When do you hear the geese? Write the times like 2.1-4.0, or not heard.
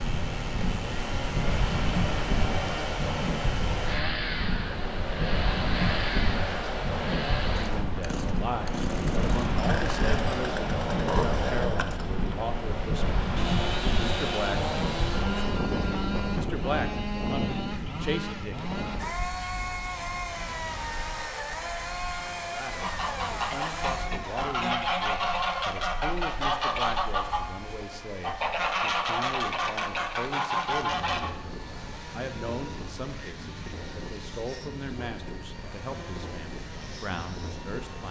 22.8-31.3.